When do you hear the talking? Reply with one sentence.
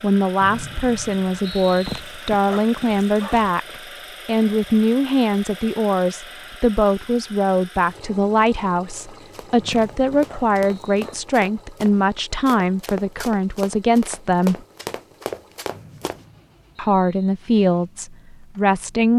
The talking can be heard from 0.0 to 3.6 s, from 4.2 to 14.6 s and from 16.8 to 19.1 s.